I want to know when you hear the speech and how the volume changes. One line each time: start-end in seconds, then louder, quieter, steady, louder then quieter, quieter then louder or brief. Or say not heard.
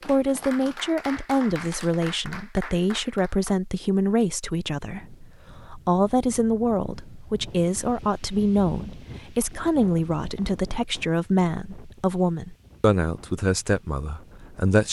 0.1-14.8 steady.